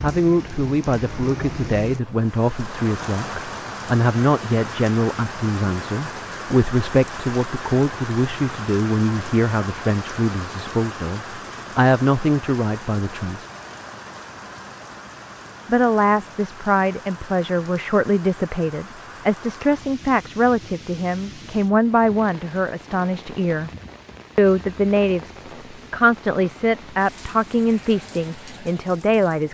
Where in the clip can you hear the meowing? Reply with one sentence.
You can't hear the meowing here.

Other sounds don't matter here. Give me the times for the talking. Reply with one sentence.
The talking can be heard from 0.0 to 13.4 s, from 15.7 to 23.7 s and from 24.4 to 29.4 s.